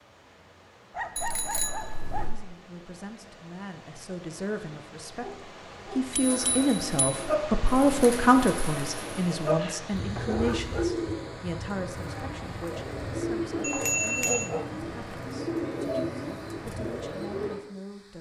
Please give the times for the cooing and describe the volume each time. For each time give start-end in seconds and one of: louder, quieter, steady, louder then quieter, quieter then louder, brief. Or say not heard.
6.2-17.6 steady.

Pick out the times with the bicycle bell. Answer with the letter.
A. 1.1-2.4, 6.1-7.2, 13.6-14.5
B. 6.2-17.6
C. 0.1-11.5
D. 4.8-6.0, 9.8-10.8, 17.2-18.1
A.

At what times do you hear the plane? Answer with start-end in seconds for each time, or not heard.
not heard.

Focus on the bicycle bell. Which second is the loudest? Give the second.
14 s.